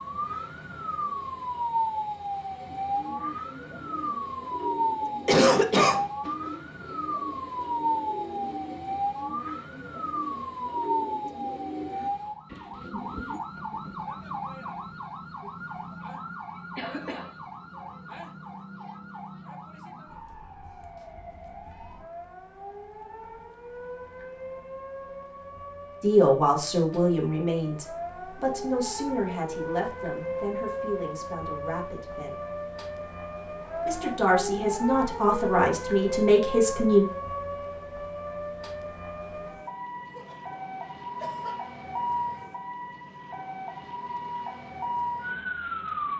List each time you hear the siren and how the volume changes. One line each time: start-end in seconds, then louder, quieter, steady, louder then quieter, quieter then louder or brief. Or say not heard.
0.0-46.1 quieter then louder.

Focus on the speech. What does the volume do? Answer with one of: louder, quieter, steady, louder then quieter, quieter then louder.
quieter then louder.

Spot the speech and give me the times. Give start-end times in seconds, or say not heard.
26.0-32.4, 33.9-37.0.